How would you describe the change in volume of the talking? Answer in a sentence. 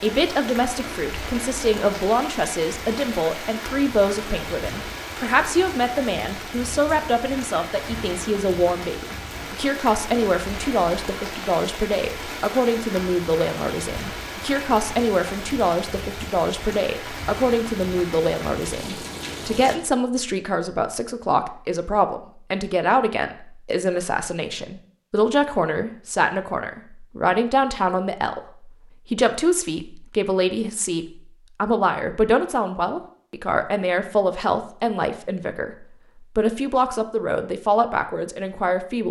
The volume of the talking stays about the same.